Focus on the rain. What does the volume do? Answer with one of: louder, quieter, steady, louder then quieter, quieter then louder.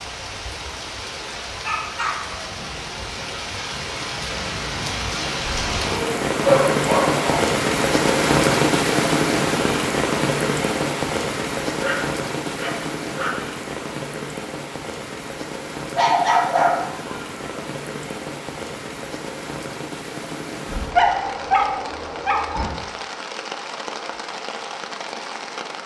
louder then quieter.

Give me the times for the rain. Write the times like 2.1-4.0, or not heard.
0.0-25.8.